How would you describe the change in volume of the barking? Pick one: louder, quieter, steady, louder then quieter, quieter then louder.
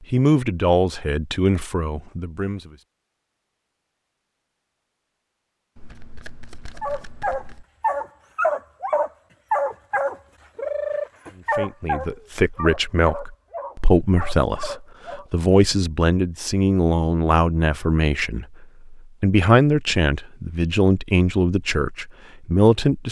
quieter.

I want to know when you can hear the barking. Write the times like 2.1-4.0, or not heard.
6.8-15.2.